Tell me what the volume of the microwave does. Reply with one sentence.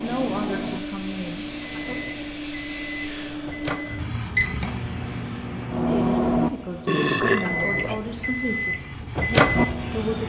The loudness of the microwave goes up.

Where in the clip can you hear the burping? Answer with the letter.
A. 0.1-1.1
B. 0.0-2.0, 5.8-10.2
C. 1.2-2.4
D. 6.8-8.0
D.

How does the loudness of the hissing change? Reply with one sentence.
The loudness of the hissing goes down, then up.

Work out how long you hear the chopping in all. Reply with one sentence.
The chopping can't be heard in this clip.